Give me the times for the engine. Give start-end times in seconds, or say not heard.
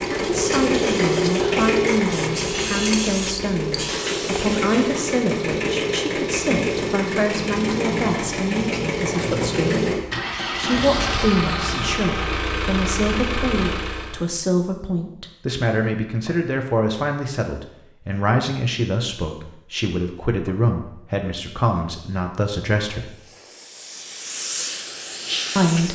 0.0-14.2.